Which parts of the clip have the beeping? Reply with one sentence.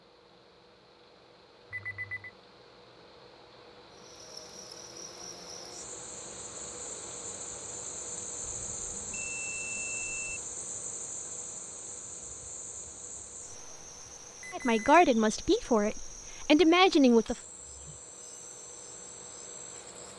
The beeping can be heard from 1.7 to 2.3 s, from 8.4 to 10.4 s and from 14.4 to 14.8 s.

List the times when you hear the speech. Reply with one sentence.
You can hear the speech from 14.5 to 17.4 s.